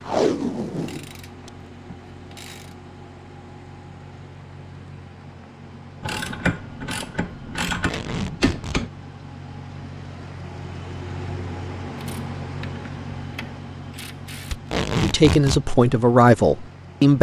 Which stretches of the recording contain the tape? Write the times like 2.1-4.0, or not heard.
0.0-1.9, 7.7-8.8, 14.5-15.6.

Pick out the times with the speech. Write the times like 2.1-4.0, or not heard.
14.9-17.1.